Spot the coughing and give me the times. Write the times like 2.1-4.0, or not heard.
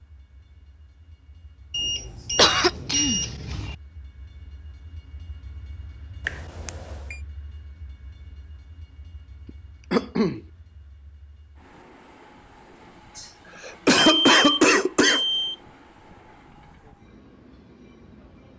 2.4-3.8, 9.9-10.4, 13.2-15.2.